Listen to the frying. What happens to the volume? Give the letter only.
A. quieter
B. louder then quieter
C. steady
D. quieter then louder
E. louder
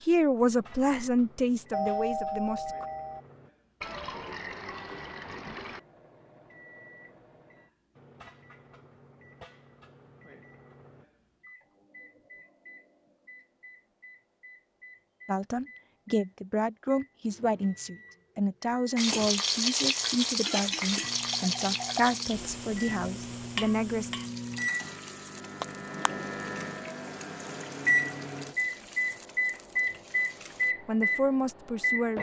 A.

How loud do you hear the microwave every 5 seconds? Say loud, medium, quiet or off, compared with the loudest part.
quiet, quiet, quiet, quiet, medium, loud, loud.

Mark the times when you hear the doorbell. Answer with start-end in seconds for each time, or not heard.
1.7-3.2.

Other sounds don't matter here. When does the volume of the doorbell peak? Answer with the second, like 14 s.
2 s.